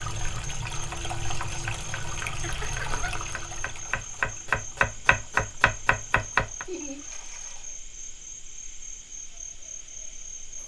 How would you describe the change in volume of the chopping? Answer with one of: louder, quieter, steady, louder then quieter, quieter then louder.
louder.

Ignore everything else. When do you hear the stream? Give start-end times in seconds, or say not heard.
0.0-7.8.